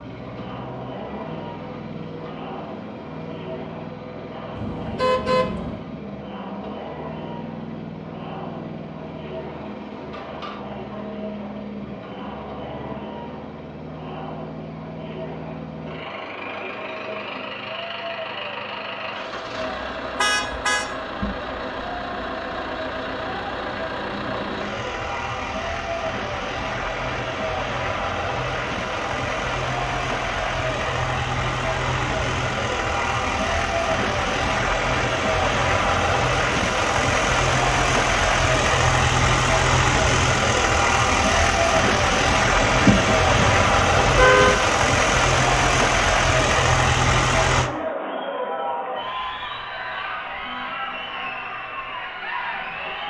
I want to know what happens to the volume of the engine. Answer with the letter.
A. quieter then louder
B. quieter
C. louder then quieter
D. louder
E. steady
D.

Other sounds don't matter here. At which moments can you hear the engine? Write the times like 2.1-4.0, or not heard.
0.0-47.7.